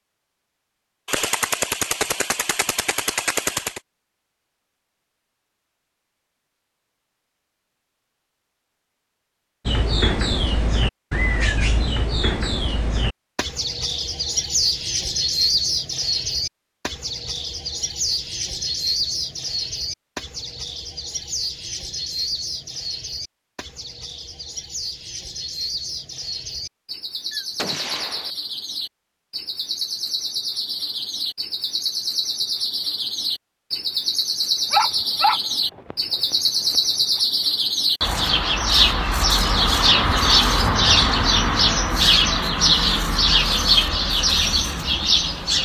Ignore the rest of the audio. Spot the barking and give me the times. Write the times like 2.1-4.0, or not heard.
34.7-36.8.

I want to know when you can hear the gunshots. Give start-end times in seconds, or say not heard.
1.1-3.8, 27.3-28.4.